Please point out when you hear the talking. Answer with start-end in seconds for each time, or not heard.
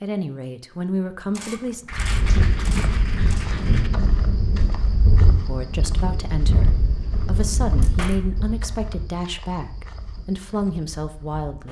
0.0-1.9, 5.5-11.6.